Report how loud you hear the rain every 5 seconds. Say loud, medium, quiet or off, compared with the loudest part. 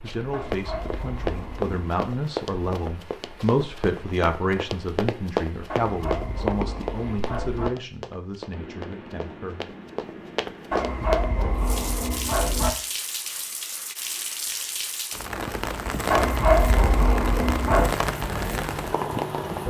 quiet, quiet, medium, loud.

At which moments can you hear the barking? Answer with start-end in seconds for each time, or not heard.
0.3-1.8, 5.7-7.7, 10.7-12.7, 16.1-17.9.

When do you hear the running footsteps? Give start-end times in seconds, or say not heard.
0.1-11.4.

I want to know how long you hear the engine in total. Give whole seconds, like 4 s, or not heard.
2 s.